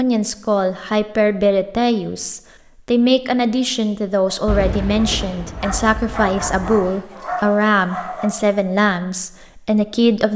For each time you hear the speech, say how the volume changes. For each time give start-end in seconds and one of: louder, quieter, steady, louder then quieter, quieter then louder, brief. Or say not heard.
0.0-10.3 steady.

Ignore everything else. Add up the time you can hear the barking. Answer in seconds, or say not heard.
4 s.